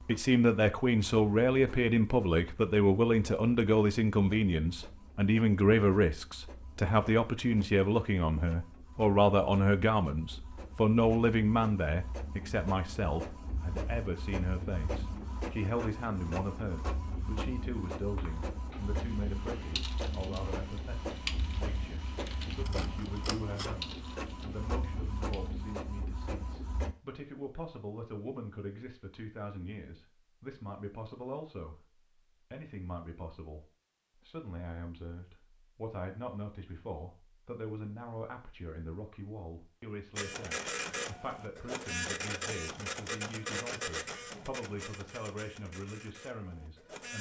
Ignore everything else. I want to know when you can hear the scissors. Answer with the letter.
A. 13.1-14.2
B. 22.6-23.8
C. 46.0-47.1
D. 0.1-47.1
B.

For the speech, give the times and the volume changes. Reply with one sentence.
You can hear the speech from 0.1 to 47.1 s, getting quieter.